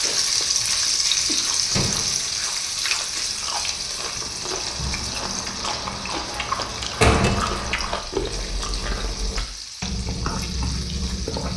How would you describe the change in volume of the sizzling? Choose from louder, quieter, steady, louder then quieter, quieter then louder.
quieter.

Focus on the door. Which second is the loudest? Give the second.
7 s.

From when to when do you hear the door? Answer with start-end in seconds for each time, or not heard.
1.7-2.2, 7.0-8.1.